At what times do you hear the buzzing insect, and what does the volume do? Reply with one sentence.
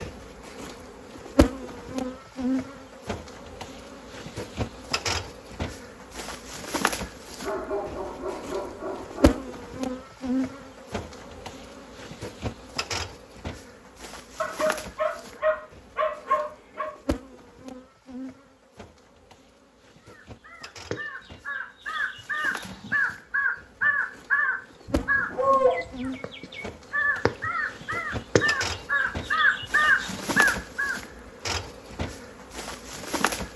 The buzzing insect can be heard from 0.0 to 33.5 s, getting quieter then louder.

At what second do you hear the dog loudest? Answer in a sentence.
The volume of the dog peaks at 26 seconds.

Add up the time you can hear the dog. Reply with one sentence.
You can hear the dog for 6 seconds altogether.